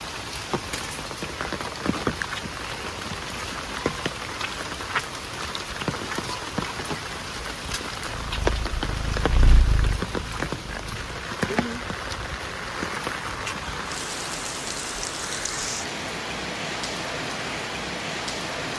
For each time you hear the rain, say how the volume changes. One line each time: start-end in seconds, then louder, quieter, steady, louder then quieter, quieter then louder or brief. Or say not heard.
0.0-18.7 steady.